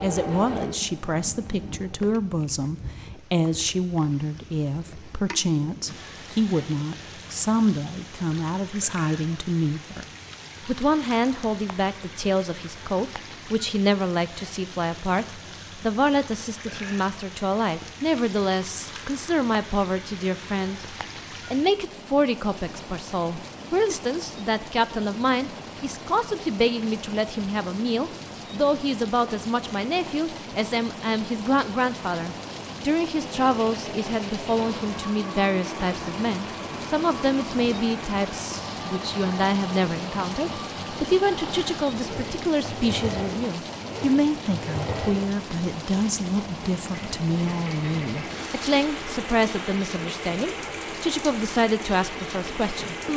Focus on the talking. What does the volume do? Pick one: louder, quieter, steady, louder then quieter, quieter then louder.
steady.